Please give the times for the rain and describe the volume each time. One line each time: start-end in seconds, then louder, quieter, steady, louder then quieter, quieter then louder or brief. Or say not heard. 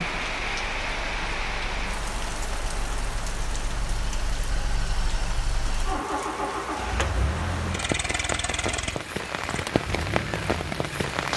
0.0-11.3 quieter then louder.